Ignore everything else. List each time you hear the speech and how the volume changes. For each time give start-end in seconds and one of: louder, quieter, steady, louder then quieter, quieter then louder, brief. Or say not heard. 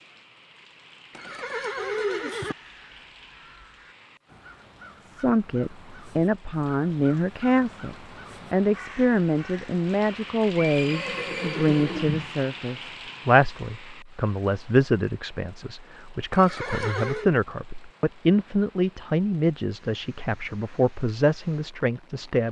5.0-22.4 steady.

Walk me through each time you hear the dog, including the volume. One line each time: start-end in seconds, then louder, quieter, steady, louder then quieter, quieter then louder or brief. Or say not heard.
not heard.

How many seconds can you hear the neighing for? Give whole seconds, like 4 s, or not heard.
4 s.